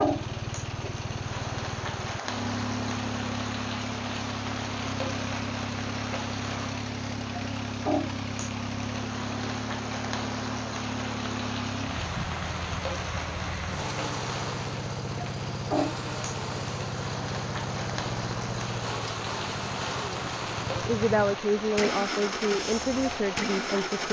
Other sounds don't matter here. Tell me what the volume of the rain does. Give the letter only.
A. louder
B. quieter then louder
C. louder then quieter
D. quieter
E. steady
E.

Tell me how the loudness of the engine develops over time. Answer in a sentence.
The volume of the engine stays about the same.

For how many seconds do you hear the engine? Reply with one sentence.
You can hear the engine for 24 seconds altogether.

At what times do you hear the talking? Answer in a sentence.
You can hear the talking from 20.0 to 24.0 s.